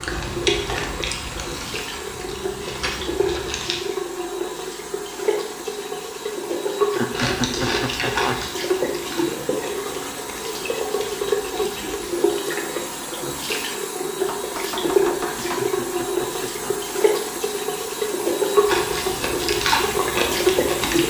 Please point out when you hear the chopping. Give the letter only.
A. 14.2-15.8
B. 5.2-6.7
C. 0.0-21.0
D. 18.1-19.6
A.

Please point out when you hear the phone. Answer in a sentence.
The phone can't be heard in this clip.